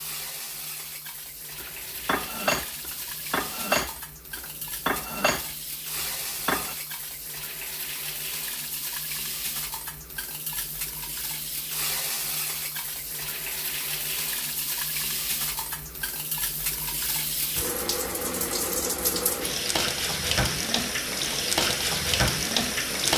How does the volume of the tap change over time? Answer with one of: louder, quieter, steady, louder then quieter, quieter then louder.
louder.